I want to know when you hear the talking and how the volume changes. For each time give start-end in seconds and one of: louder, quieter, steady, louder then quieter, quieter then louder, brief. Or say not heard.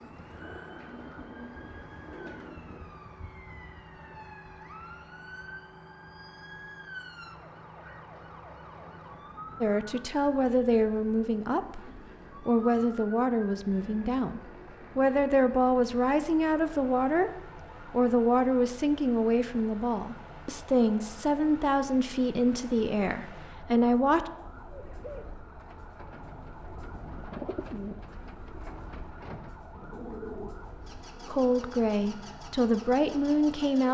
9.6-24.3 steady
31.2-33.8 brief.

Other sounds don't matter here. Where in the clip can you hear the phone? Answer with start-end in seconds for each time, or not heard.
not heard.